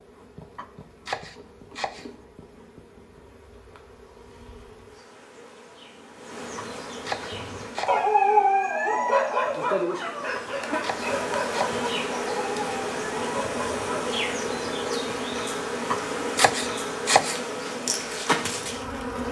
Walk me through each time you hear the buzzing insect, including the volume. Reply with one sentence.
You can hear the buzzing insect from 0.0 to 19.2 s, getting louder.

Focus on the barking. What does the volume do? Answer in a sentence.
The volume of the barking goes down.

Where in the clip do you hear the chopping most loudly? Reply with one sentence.
The volume of the chopping peaks at 17 seconds.